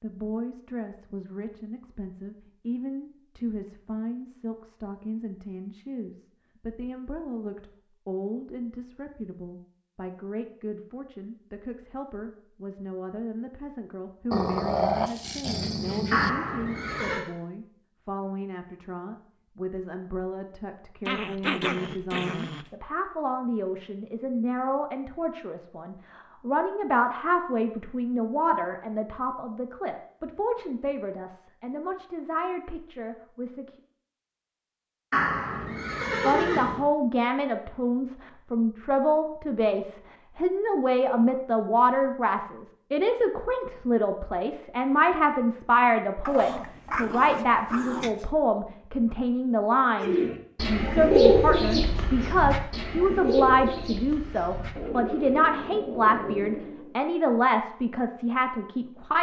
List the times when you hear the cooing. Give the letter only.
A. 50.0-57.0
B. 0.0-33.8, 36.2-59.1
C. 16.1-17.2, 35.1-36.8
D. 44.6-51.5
A.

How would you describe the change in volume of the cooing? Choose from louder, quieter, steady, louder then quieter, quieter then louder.
quieter.